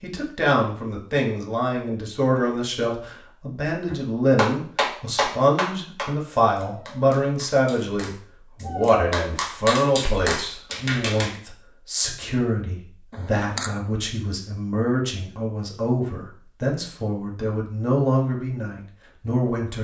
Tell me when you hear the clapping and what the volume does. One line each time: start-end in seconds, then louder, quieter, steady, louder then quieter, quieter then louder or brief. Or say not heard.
3.9-11.4 quieter then louder.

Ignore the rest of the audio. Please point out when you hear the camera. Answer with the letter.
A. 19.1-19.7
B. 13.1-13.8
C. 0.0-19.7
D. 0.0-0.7
B.